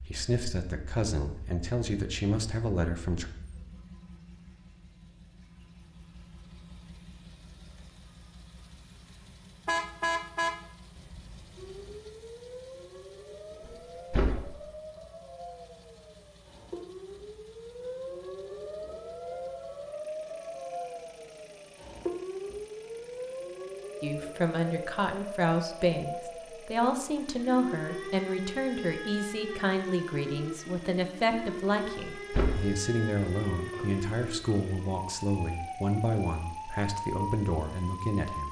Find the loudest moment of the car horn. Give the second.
10 s.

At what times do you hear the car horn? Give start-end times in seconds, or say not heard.
9.7-12.0.